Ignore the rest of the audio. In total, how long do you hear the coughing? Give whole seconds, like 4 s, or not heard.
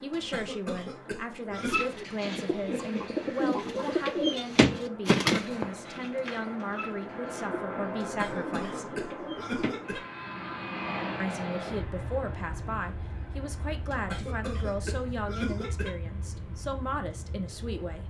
6 s.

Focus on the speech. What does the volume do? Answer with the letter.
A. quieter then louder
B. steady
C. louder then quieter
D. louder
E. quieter
B.